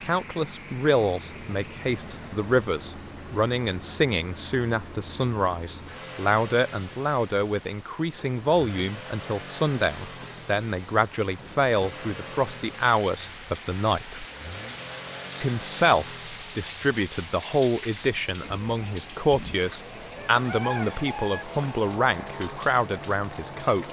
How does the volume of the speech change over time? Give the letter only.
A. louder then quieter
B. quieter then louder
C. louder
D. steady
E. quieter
D.